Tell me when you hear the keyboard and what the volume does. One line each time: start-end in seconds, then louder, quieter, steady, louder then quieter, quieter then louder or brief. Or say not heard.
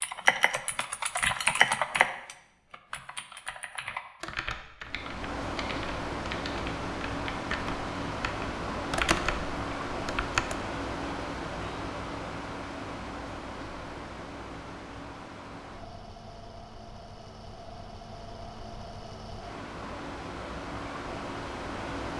0.0-10.6 quieter then louder.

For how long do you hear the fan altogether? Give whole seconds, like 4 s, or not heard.
17 s.